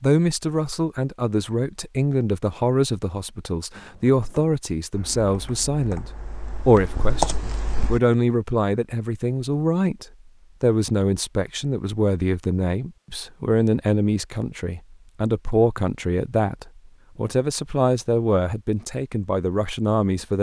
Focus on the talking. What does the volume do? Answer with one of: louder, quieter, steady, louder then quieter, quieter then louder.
steady.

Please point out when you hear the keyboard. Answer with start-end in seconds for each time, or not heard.
3.8-8.0.